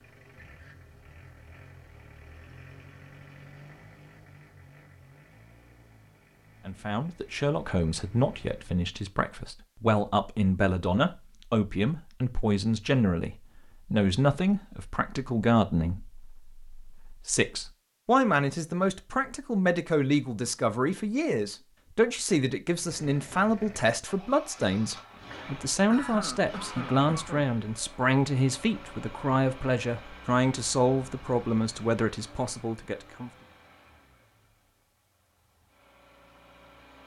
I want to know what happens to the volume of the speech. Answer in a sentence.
The loudness of the speech stays about the same.